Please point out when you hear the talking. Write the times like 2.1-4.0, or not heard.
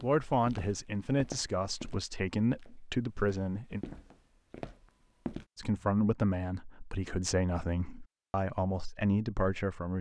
0.0-3.9, 5.5-9.9.